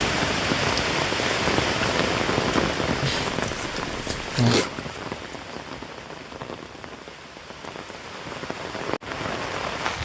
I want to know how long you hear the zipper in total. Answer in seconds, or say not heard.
2 s.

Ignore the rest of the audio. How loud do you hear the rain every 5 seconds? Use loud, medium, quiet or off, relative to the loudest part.
loud, medium.